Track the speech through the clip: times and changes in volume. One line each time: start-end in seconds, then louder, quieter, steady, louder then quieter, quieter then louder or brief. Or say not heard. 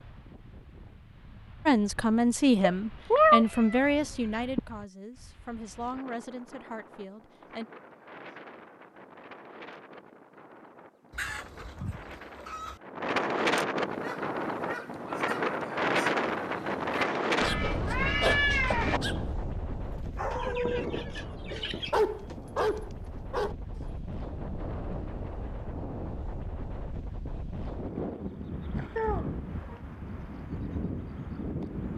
1.6-7.7 quieter.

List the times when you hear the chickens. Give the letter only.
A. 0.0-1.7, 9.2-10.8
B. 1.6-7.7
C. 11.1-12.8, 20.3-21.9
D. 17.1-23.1
C.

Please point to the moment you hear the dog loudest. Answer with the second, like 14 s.
22 s.